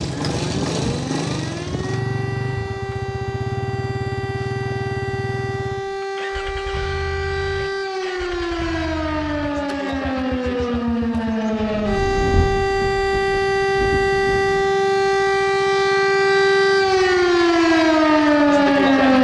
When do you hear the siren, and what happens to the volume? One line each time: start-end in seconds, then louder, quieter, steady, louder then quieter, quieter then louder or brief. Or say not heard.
0.0-19.1 louder.